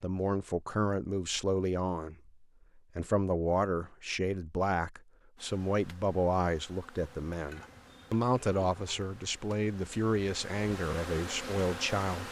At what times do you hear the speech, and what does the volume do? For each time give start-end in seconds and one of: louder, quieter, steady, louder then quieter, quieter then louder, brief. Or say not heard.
0.0-12.2 steady.